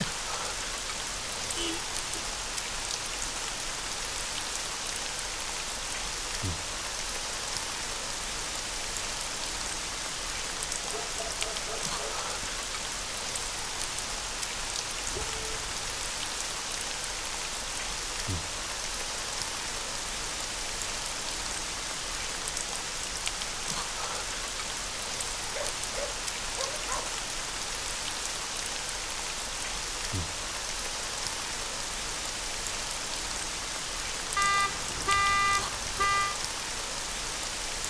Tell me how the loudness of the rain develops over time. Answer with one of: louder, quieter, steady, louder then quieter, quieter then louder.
steady.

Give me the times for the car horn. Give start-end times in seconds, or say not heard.
1.4-2.2, 15.0-15.8, 34.4-36.4.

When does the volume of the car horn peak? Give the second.
35 s.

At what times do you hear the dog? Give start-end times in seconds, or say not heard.
10.8-12.5, 25.4-27.2.